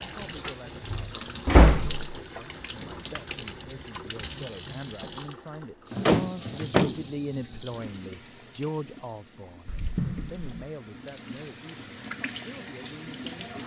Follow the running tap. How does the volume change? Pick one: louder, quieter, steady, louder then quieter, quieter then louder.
quieter then louder.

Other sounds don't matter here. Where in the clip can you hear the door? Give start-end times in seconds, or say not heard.
0.5-2.1, 6.0-7.0, 9.7-10.6.